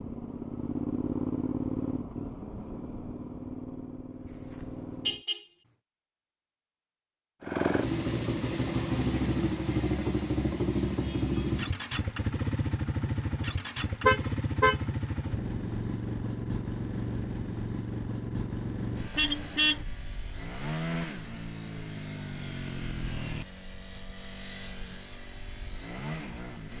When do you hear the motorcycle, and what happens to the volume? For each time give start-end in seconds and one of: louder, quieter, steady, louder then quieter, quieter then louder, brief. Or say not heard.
0.0-5.2 quieter
7.4-26.7 quieter.